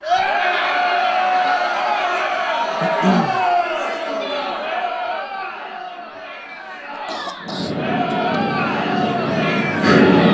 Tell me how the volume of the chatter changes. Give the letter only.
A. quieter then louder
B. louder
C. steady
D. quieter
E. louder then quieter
A.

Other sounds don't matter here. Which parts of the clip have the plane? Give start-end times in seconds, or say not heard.
7.4-10.2.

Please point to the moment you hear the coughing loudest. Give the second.
3 s.